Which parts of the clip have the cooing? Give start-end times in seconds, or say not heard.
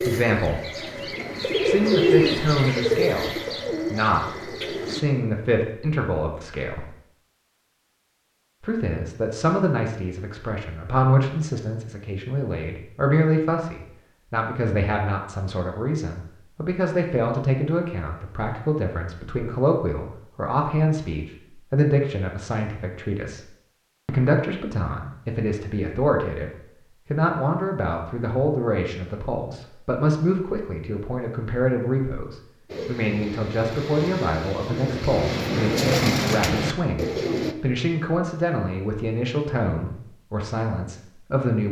0.0-5.0, 32.6-37.5.